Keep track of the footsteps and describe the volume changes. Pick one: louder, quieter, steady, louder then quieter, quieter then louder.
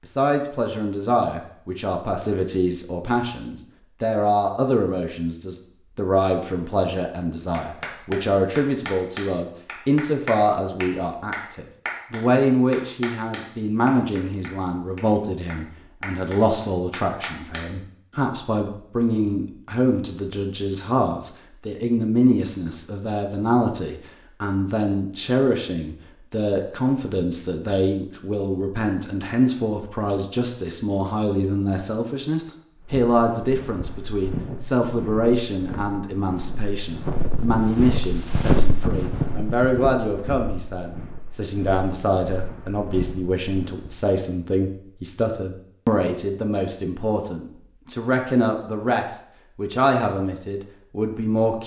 louder then quieter.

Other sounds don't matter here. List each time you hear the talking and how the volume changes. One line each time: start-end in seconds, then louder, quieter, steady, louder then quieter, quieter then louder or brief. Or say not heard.
0.1-51.6 steady.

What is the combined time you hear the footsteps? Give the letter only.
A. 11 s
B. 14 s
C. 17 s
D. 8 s
A.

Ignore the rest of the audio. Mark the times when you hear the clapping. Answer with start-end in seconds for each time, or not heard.
7.5-17.6.